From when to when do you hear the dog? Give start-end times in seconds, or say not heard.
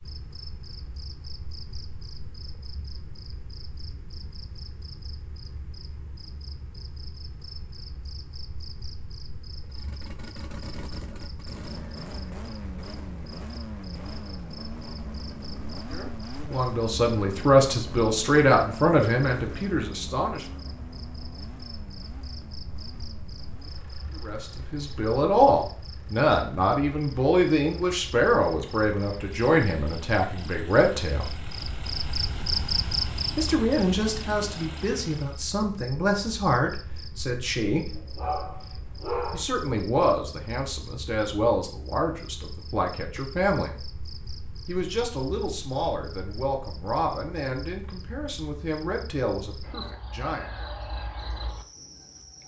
37.9-39.5.